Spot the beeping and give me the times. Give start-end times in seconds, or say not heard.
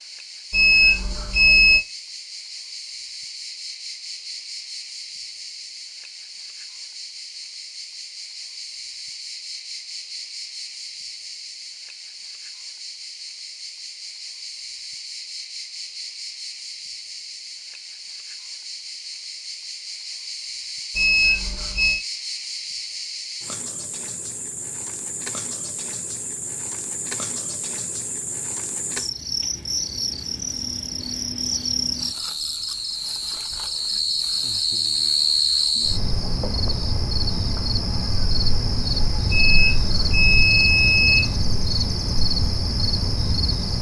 0.5-1.8, 20.9-22.0, 39.3-41.3.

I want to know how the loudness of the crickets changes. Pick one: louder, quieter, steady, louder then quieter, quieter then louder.
louder.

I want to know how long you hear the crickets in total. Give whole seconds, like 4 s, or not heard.
44 s.